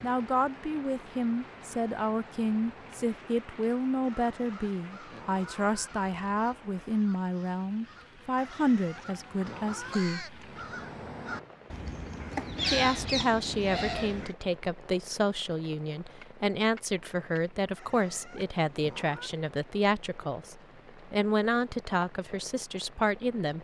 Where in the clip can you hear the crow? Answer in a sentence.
You can hear the crow from 4.1 to 14.3 s.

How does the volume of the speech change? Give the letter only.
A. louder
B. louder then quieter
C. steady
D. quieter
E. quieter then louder
C.